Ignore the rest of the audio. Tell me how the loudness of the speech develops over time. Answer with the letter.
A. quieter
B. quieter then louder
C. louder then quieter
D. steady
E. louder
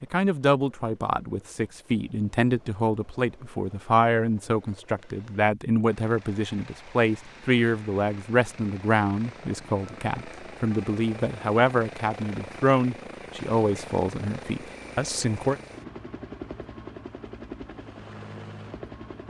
D.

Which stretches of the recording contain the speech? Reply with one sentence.
You can hear the speech from 0.0 to 15.6 s.